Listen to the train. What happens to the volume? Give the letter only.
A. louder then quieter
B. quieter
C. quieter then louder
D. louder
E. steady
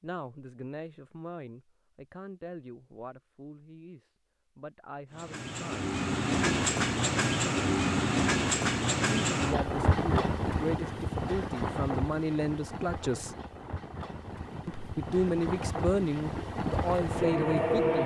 C.